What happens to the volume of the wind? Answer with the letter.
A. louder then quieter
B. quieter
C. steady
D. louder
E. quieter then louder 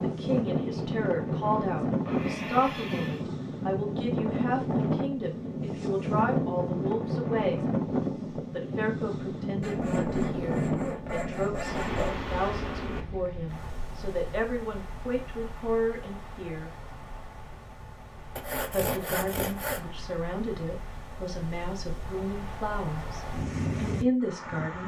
E.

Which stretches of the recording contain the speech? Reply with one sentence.
You can hear the speech from 0.0 to 7.7 s, from 8.3 to 16.7 s and from 18.7 to 24.8 s.